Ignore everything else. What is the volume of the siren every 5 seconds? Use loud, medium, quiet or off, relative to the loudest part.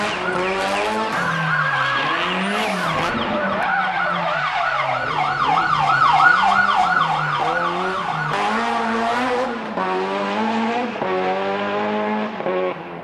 medium, loud, off.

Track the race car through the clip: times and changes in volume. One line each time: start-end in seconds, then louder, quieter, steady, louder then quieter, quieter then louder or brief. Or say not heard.
0.0-12.9 quieter then louder.